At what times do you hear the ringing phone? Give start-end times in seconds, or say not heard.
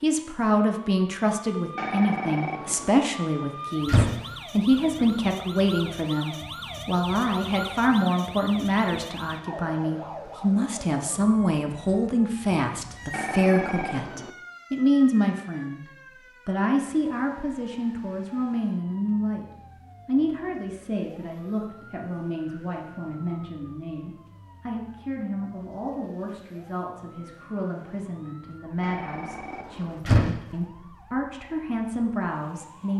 1.8-3.0, 13.1-14.3, 28.8-30.0.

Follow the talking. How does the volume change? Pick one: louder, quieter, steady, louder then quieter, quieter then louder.
quieter.